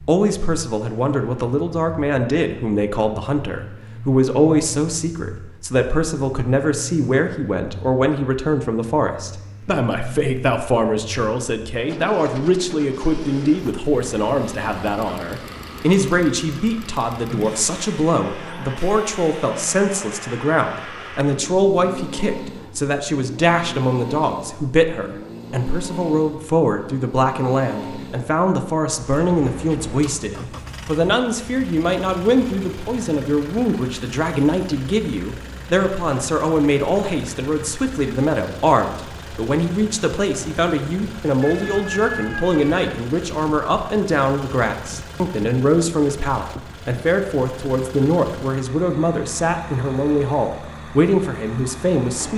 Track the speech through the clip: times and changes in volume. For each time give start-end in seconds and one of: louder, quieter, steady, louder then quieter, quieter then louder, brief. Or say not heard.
0.0-52.3 steady.